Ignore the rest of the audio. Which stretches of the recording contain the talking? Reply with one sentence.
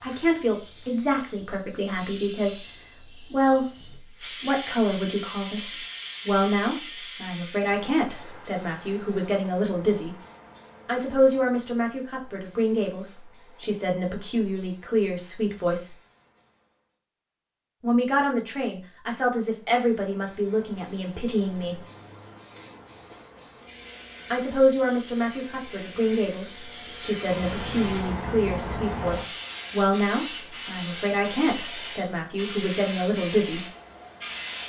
You can hear the talking from 0.0 to 10.2 s, from 10.8 to 15.9 s, from 17.8 to 21.8 s and from 24.3 to 33.6 s.